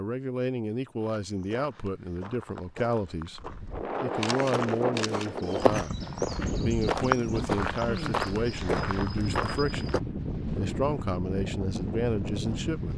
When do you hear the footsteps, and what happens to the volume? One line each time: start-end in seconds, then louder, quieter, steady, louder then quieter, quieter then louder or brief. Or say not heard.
1.0-10.0 louder.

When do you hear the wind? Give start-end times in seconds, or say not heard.
3.4-12.9.